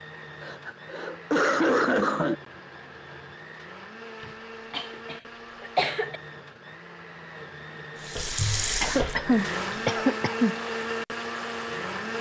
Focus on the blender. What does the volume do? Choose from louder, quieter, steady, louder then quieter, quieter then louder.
louder.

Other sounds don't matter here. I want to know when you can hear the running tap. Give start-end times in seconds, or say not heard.
8.0-9.9.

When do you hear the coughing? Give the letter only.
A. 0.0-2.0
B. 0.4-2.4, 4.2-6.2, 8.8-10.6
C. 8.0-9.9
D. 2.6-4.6
B.